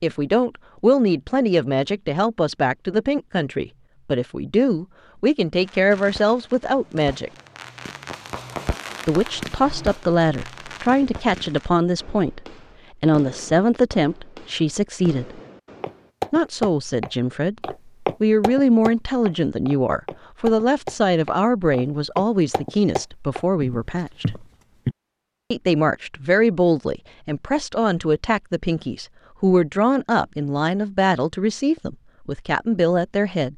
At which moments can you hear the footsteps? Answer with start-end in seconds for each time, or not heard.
15.8-24.9.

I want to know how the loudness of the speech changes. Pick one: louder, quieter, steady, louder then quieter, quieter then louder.
steady.